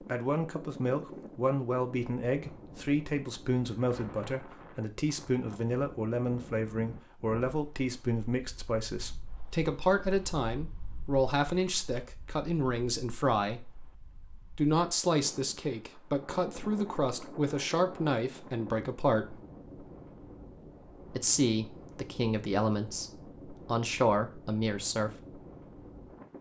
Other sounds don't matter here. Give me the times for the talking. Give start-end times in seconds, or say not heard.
0.0-13.8, 14.6-19.4, 21.1-25.1.